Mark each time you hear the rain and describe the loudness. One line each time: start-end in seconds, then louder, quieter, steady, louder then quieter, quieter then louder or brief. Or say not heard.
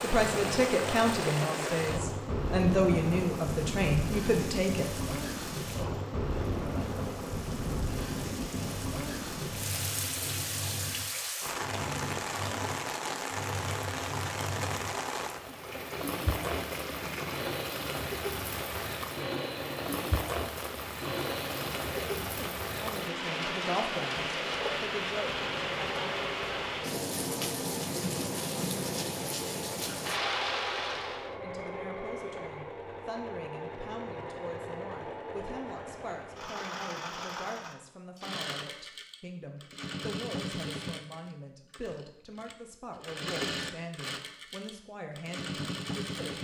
0.0-31.4 steady.